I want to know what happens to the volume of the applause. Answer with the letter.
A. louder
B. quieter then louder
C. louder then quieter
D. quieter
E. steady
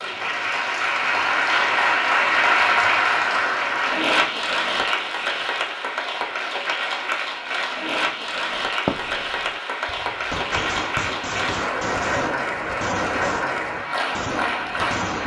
D.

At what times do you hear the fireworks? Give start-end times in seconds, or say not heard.
8.7-15.2.